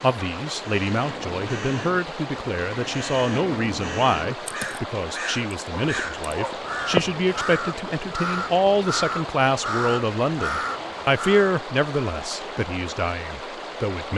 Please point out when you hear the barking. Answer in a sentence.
You can hear the barking from 5.7 to 7.0 s.